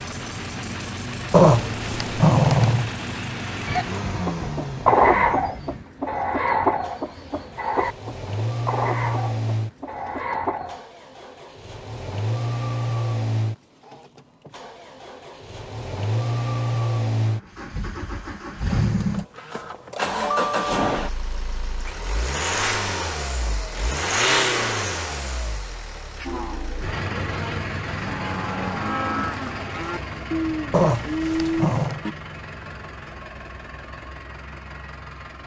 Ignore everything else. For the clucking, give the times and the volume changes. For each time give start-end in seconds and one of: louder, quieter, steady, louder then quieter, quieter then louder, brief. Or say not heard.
3.6-10.8 quieter.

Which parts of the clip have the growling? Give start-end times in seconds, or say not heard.
1.3-2.9, 30.7-32.0.